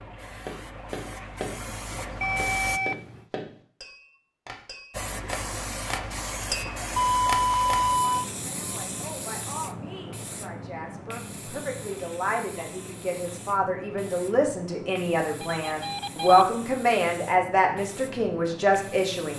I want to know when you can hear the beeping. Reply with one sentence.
You can hear the beeping from 2.2 to 3.2 s, from 7.0 to 8.2 s and from 15.4 to 16.4 s.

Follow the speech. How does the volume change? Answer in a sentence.
The volume of the speech goes up.